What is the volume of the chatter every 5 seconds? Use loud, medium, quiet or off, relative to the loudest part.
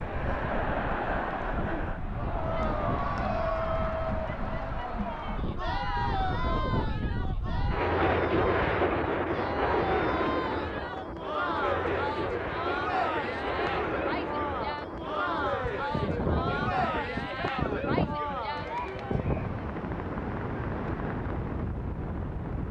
loud, loud, loud, loud, off.